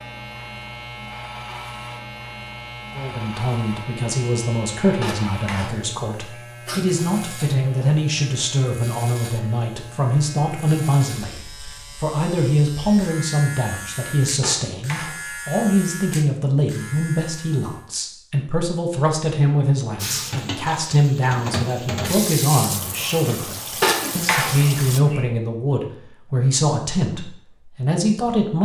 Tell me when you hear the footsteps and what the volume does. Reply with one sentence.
The footsteps can't be heard in this clip.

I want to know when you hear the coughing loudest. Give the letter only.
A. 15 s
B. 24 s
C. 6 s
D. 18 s
B.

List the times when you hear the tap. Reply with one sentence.
You can hear the tap from 19.9 to 25.0 s.